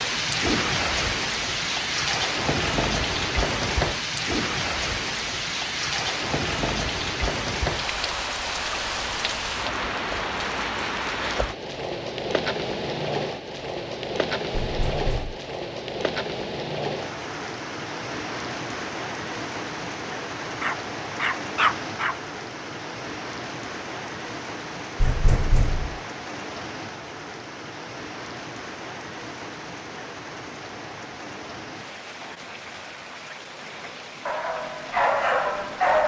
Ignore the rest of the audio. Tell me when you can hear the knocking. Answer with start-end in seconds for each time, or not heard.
14.6-15.3, 25.0-26.0.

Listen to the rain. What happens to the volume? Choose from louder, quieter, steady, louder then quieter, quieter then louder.
quieter.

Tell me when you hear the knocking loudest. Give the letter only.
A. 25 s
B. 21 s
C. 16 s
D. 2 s
A.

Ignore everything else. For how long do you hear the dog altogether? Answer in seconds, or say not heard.
4 s.